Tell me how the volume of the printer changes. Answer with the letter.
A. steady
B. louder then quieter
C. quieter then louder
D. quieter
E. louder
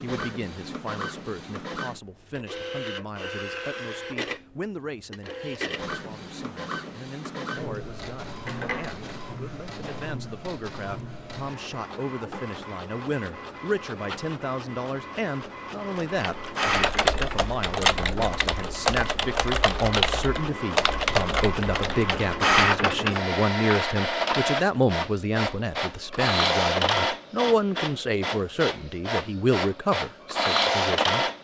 E.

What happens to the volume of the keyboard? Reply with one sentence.
The loudness of the keyboard goes down, then up.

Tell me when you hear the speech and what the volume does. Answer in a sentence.
The speech can be heard from 0.0 to 31.2 s, getting louder.